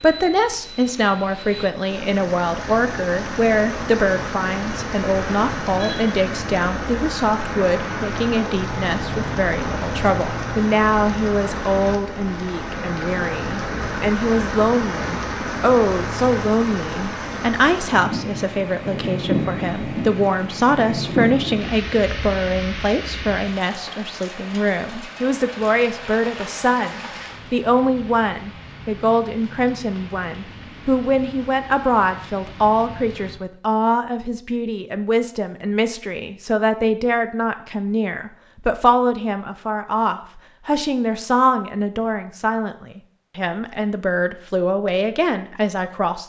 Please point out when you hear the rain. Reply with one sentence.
The rain can be heard from 0.0 to 33.4 s.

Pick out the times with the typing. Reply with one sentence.
The typing can't be heard in this clip.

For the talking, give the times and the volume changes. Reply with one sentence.
You can hear the talking from 0.0 to 46.2 s, at a steady volume.